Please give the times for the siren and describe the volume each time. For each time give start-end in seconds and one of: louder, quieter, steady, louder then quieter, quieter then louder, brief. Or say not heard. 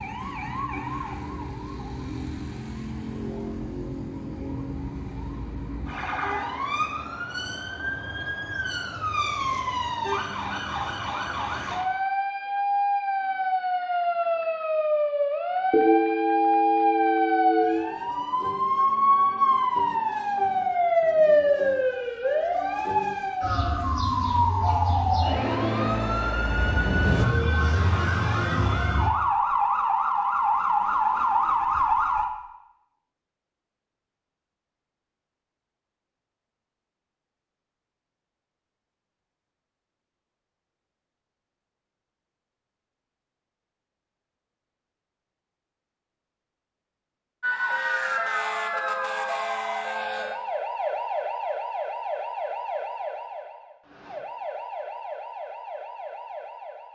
0.0-32.3 louder
47.4-56.9 quieter.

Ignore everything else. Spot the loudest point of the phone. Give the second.
16 s.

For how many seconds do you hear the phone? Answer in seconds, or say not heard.
2 s.